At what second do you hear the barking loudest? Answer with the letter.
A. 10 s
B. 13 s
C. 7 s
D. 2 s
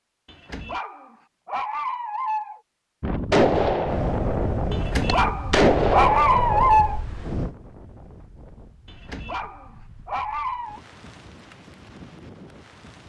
C.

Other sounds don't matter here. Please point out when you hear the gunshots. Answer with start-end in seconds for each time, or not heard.
3.3-6.9.